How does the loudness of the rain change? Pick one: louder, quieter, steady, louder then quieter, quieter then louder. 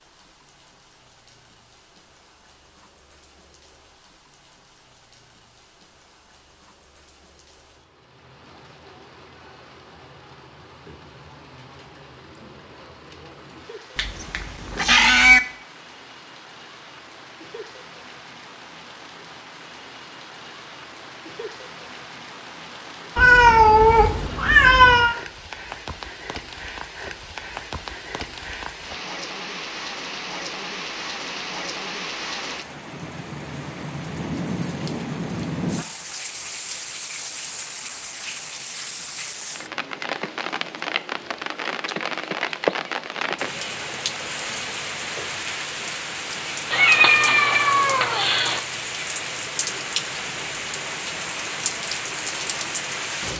louder.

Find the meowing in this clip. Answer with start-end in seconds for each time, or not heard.
13.9-15.4, 23.1-25.1, 46.7-48.6.